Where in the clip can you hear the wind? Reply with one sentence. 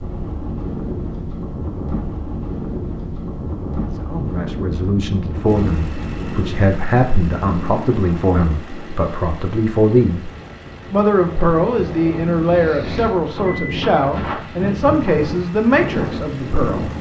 The wind can be heard from 0.0 to 16.9 s.